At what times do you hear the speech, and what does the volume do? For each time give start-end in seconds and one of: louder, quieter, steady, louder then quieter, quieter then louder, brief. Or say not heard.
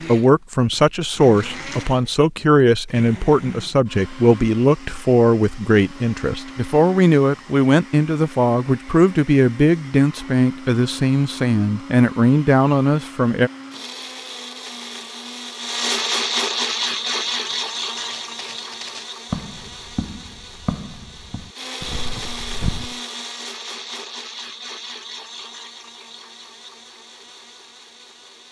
0.1-13.5 steady.